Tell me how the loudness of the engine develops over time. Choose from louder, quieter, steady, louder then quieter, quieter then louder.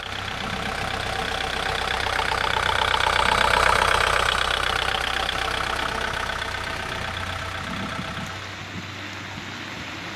louder then quieter.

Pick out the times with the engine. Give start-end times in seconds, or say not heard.
0.0-8.6.